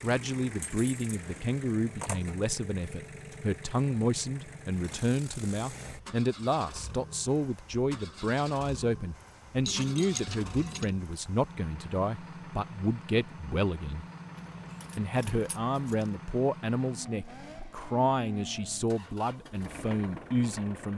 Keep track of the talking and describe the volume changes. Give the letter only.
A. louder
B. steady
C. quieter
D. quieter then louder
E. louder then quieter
B.